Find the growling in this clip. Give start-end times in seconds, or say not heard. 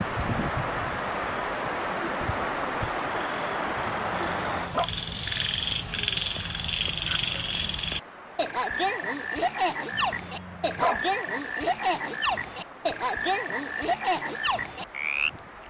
3.9-4.9, 9.9-11.1.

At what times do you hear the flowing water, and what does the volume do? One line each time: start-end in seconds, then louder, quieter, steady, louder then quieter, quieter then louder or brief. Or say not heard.
0.0-15.6 quieter.